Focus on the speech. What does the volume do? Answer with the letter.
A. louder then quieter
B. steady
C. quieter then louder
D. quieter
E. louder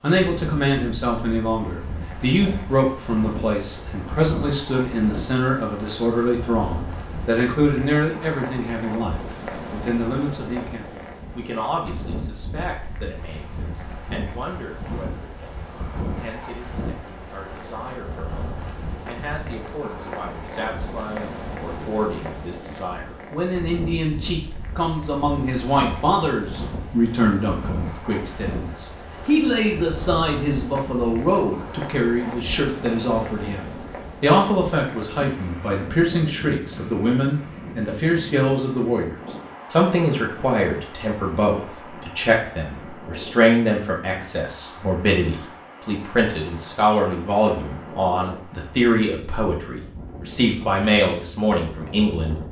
C.